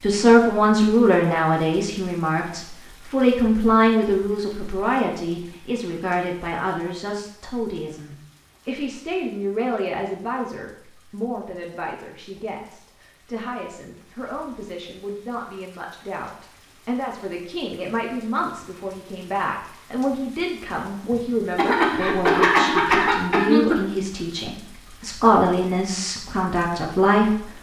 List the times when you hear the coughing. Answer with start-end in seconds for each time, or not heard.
21.1-23.9.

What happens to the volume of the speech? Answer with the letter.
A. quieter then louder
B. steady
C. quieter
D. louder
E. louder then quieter
A.